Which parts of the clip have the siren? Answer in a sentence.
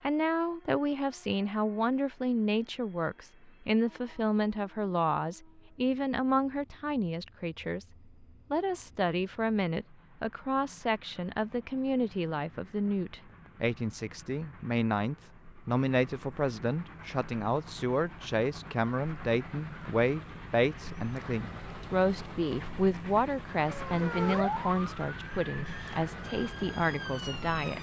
You can hear the siren from 23.6 to 27.7 s.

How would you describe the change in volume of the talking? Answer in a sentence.
The volume of the talking stays about the same.